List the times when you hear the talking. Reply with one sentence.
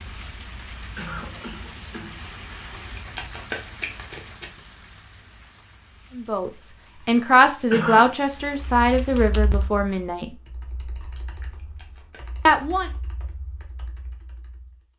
The talking can be heard from 6.2 to 10.3 s and from 12.4 to 12.9 s.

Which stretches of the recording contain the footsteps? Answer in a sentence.
The footsteps can't be heard in this clip.